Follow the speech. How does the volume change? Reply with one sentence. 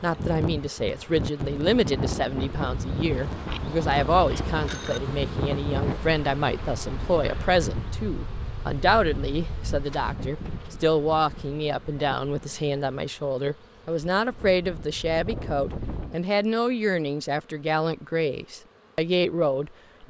The loudness of the speech stays about the same.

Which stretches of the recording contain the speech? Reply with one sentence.
You can hear the speech from 0.0 to 20.0 s.